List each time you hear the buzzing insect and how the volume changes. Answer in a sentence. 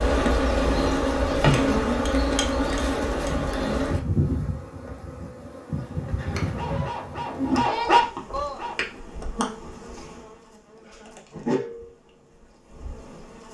The buzzing insect can be heard from 0.0 to 13.5 s, getting quieter.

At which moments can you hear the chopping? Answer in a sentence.
The chopping can't be heard in this clip.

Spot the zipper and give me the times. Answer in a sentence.
You can't hear the zipper here.